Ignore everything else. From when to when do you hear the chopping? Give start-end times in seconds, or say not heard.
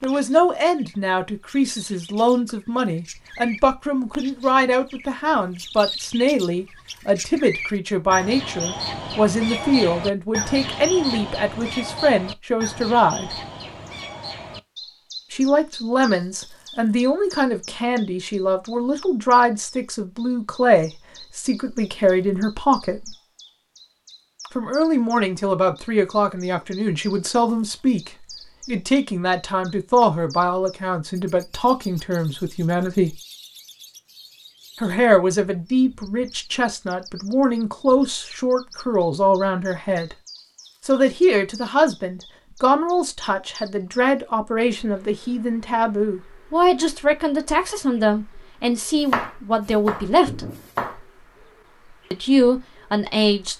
48.6-51.0.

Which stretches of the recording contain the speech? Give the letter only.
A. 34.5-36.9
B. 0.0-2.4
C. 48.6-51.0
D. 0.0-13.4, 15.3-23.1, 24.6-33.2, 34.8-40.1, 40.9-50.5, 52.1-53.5
D.